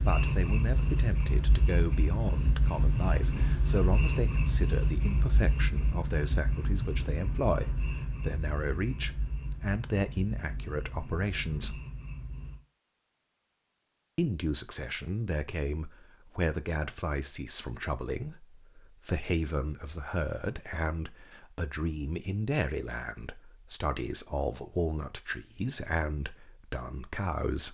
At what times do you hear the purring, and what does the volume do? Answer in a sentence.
You can hear the purring from 0.0 to 12.6 s, getting quieter.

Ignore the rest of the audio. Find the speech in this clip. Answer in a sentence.
The speech can be heard from 0.1 to 11.8 s and from 14.2 to 27.6 s.